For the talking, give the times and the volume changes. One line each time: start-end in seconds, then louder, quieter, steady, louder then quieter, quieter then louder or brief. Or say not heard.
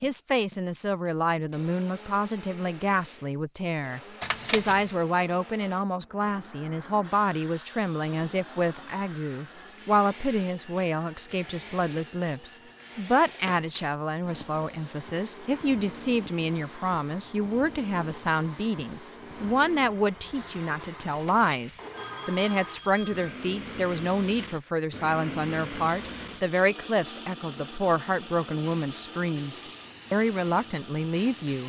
0.0-31.6 steady.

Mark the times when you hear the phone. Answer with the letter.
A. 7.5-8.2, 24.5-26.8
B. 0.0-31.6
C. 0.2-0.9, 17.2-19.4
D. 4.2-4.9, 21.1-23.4
D.